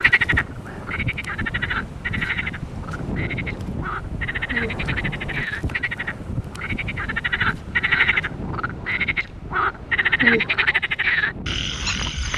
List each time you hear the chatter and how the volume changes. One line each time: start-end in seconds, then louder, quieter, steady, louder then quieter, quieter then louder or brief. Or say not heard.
not heard.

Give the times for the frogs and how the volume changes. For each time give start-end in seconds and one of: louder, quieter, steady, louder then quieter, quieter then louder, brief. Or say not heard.
0.0-12.3 louder.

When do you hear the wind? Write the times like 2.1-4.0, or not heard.
0.0-12.3.